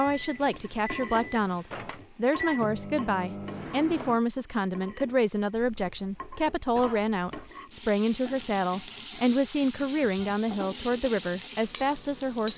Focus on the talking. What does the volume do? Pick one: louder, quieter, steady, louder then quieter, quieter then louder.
steady.